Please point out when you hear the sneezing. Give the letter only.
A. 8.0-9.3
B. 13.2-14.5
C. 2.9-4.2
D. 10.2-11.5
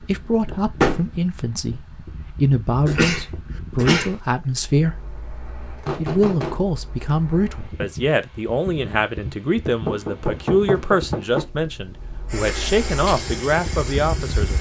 C.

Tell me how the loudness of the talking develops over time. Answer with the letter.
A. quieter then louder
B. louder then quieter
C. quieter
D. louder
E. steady
E.